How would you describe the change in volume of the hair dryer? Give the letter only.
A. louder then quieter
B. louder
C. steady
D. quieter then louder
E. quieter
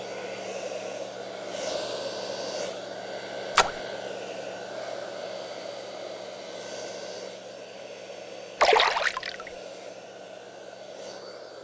E.